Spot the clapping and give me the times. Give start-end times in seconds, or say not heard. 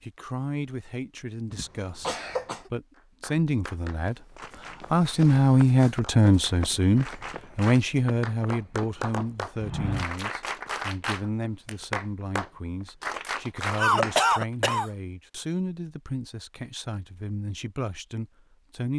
3.0-14.8.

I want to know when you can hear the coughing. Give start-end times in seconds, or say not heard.
1.5-2.7, 13.8-14.9.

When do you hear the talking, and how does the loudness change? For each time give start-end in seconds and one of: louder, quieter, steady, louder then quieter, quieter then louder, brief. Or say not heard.
0.0-18.9 louder then quieter.